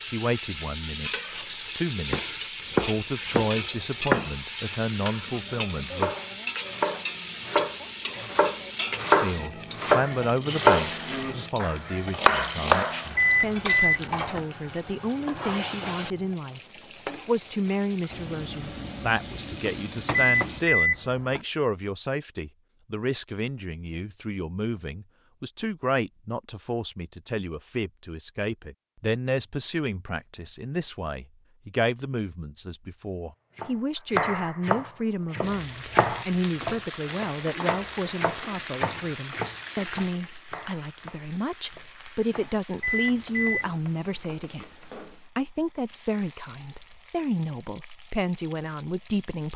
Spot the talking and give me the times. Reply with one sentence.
You can hear the talking from 0.0 to 6.1 s, from 9.2 to 16.6 s and from 17.2 to 49.5 s.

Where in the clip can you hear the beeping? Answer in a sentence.
You can hear the beeping from 13.2 to 14.4 s, from 20.4 to 21.4 s and from 42.8 to 43.8 s.